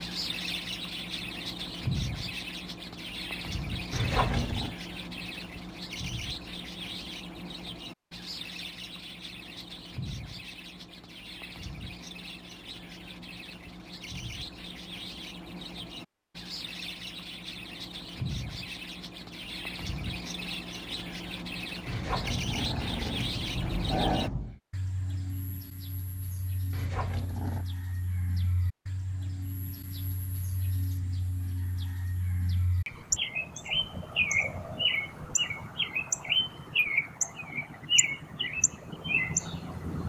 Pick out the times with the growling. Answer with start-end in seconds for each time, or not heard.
3.9-4.8, 21.9-24.6, 26.7-27.6.